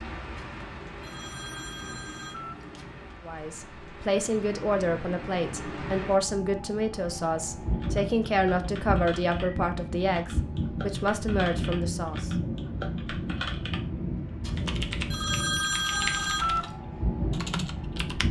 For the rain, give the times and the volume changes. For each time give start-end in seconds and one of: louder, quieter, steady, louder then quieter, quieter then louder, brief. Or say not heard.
0.0-18.2 louder.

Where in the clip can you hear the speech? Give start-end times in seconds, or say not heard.
3.2-12.3.